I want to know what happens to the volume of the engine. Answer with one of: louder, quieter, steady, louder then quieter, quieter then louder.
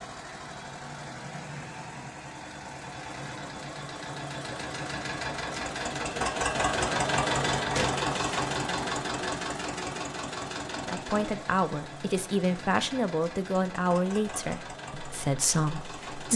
louder then quieter.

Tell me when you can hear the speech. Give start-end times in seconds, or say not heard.
10.7-16.3.